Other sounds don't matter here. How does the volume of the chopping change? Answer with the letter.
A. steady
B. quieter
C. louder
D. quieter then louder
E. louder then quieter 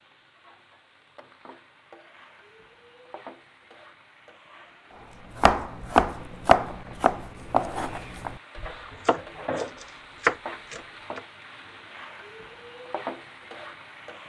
D.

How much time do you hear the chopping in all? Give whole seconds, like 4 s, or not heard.
6 s.